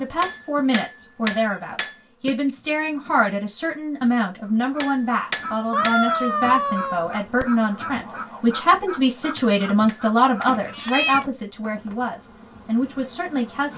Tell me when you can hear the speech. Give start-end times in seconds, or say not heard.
0.0-13.7.